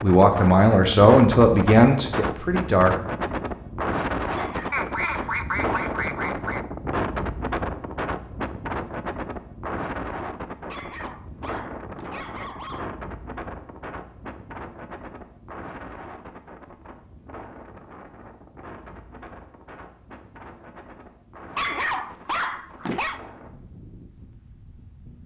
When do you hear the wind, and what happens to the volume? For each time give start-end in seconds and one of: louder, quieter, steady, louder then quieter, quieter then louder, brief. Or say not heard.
0.0-25.2 quieter.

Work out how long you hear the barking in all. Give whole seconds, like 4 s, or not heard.
6 s.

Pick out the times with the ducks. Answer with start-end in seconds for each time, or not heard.
4.7-6.7.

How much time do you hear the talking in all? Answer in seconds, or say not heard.
3 s.